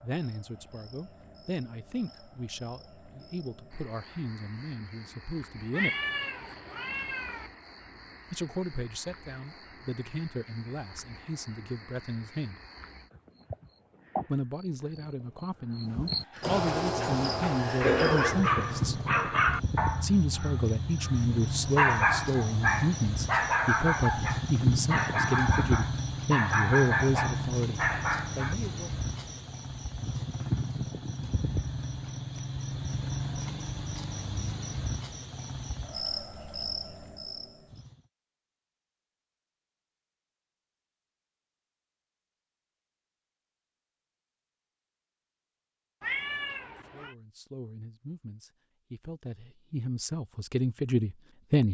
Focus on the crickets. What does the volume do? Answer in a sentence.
The volume of the crickets goes up.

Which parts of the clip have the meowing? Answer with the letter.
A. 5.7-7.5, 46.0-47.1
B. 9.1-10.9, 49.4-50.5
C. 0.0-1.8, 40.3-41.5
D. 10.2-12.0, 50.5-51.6
A.